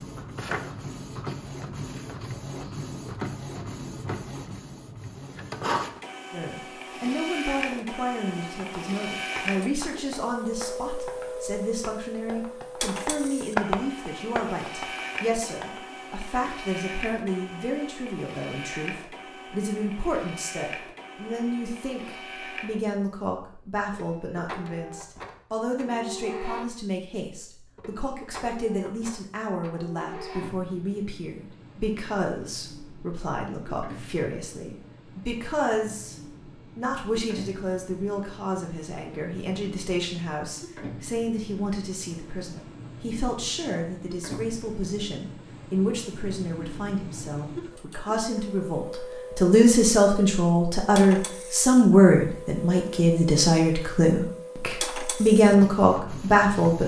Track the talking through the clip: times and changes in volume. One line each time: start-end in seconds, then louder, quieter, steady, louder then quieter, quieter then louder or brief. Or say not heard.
6.3-36.1 steady
36.8-56.8 louder.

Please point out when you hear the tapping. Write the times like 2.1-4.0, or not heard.
8.4-15.8.